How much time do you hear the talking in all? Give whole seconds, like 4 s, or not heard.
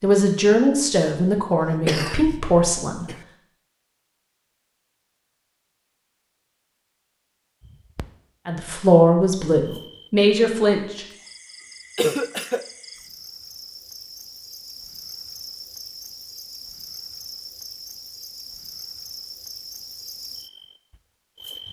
6 s.